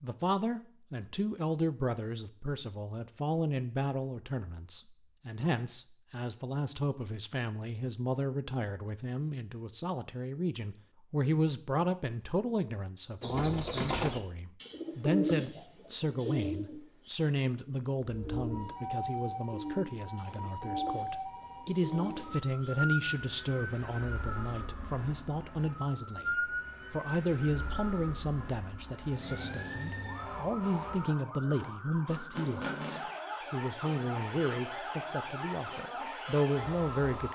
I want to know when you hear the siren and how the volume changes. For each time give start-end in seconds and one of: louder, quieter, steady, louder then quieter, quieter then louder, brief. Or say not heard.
18.0-37.3 steady.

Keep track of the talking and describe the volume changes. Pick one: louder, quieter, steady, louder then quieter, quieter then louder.
steady.